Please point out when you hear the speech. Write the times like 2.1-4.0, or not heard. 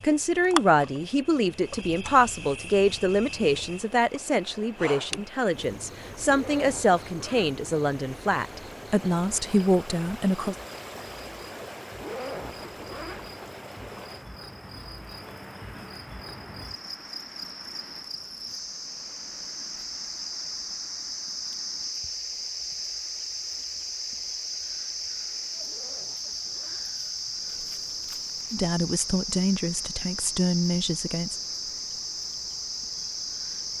0.0-10.6, 28.5-31.4.